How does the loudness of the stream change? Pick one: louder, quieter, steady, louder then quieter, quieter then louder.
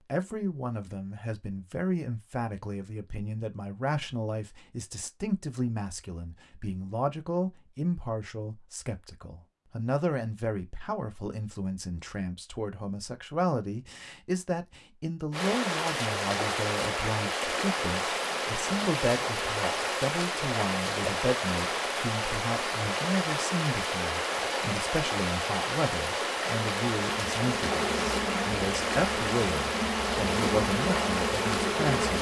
steady.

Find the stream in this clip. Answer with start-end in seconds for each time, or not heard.
15.3-32.1.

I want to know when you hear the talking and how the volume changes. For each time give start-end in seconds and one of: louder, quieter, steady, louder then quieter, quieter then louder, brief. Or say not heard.
0.1-32.1 steady.